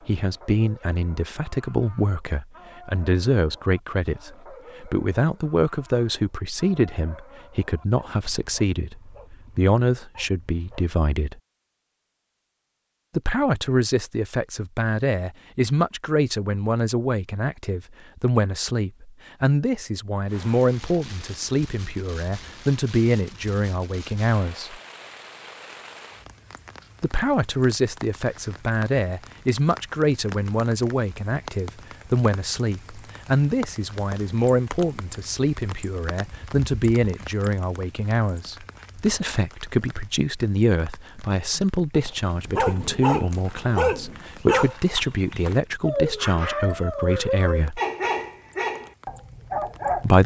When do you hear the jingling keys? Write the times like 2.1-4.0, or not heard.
not heard.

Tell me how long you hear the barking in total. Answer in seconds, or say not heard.
19 s.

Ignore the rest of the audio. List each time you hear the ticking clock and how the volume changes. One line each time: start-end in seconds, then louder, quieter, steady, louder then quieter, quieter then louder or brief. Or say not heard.
not heard.